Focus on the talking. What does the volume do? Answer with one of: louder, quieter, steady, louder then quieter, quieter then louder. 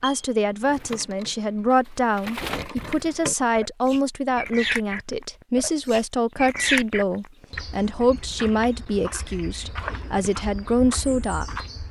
steady.